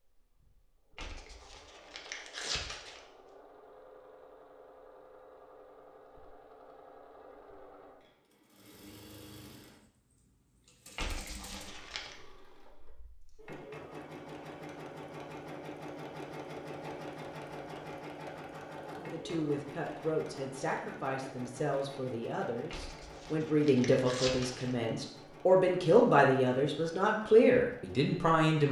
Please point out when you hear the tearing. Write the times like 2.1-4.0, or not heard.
0.9-3.0, 10.9-12.2, 22.7-24.8.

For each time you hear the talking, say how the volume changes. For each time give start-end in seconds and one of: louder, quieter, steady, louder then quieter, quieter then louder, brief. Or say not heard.
19.1-28.6 louder.